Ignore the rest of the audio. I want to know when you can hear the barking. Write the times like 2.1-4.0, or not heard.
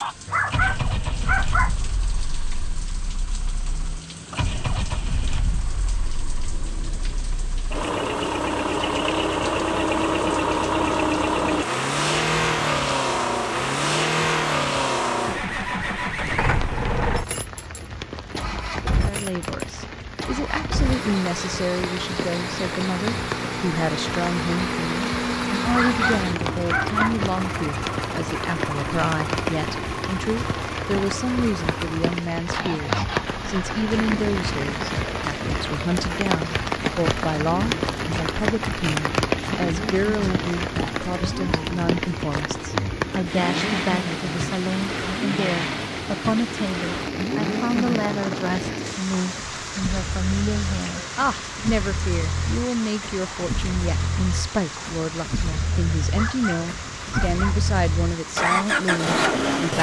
0.2-1.8, 25.7-27.2, 56.1-57.6.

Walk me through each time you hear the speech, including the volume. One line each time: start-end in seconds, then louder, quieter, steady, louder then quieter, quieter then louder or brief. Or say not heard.
18.9-59.7 steady.